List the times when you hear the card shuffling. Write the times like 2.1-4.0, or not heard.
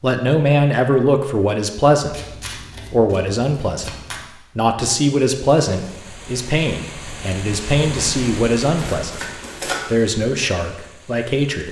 2.1-4.2, 8.6-9.8.